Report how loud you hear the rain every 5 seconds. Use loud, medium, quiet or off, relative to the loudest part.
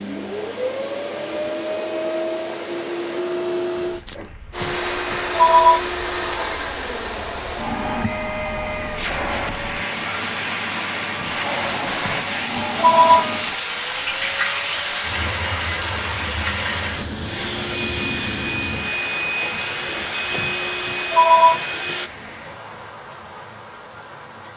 quiet, quiet, loud, loud, medium.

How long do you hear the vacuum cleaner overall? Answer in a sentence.
The vacuum cleaner can be heard for 22 seconds in total.